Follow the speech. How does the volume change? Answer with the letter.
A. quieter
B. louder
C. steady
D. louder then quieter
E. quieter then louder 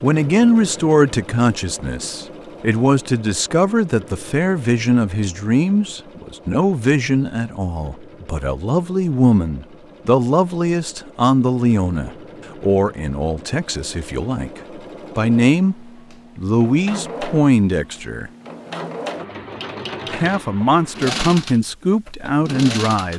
C.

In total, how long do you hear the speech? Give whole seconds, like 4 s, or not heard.
21 s.